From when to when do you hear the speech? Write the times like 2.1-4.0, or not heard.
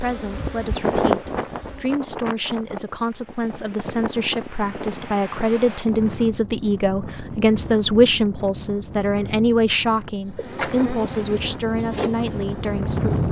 0.0-13.2.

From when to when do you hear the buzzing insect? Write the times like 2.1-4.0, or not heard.
0.0-1.9, 10.3-13.2.